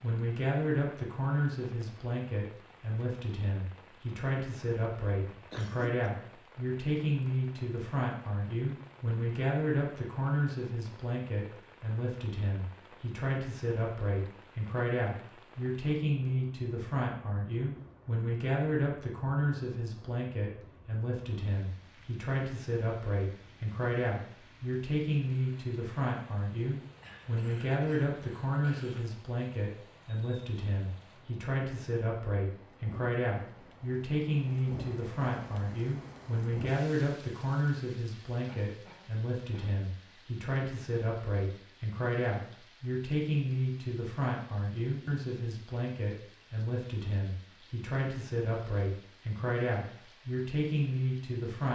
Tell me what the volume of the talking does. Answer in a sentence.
The loudness of the talking stays about the same.